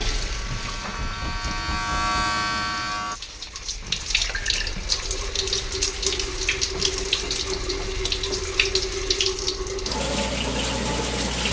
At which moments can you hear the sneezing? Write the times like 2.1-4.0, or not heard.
not heard.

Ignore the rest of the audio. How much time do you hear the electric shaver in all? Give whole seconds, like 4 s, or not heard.
3 s.